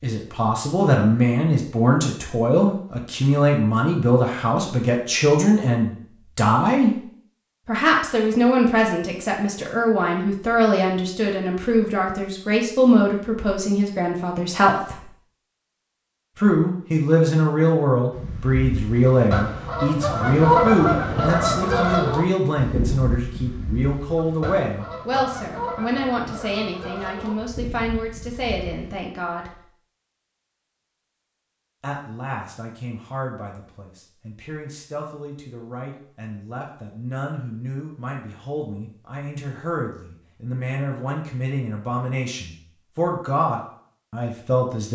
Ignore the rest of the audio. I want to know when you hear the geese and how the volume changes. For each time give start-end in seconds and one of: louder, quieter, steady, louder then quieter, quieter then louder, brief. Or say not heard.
18.1-28.9 louder then quieter.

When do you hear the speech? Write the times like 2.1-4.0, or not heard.
0.0-7.0, 7.7-15.1, 16.4-29.6, 31.8-44.9.